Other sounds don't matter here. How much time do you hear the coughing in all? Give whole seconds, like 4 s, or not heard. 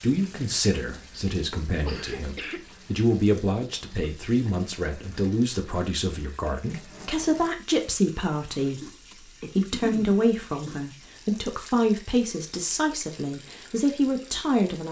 2 s.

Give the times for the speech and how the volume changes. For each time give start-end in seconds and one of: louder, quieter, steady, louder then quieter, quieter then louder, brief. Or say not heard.
0.0-14.8 steady.